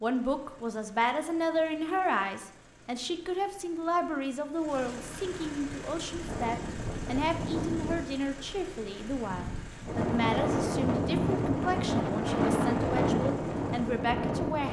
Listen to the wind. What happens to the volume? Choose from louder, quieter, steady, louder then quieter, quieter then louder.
quieter then louder.